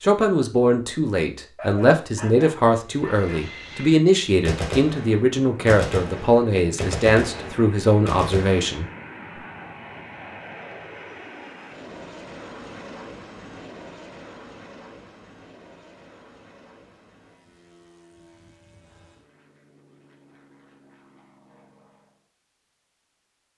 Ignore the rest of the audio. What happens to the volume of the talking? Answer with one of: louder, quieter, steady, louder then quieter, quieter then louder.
steady.